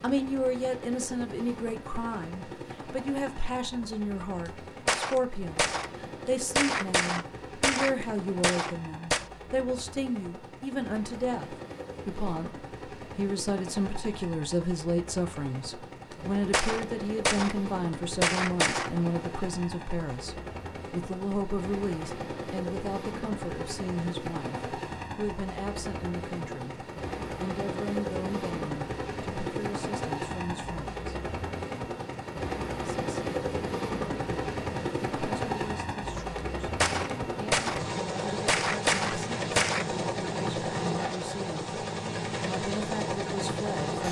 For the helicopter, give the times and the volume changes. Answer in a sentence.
The helicopter can be heard from 0.0 to 44.0 s, getting louder.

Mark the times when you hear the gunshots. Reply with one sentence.
The gunshots can be heard from 4.5 to 5.9 s, from 6.5 to 9.2 s, from 16.1 to 17.6 s, from 18.2 to 18.9 s, from 36.8 to 37.8 s and from 38.5 to 39.9 s.